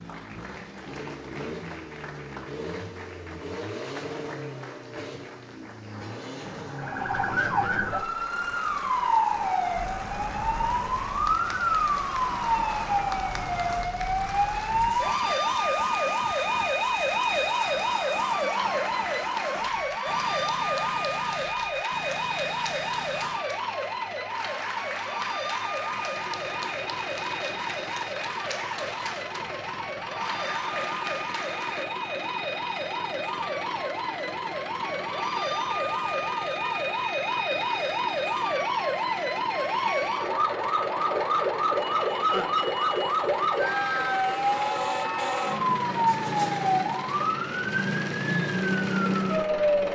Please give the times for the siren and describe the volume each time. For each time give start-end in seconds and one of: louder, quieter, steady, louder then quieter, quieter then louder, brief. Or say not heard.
6.7-49.9 quieter then louder.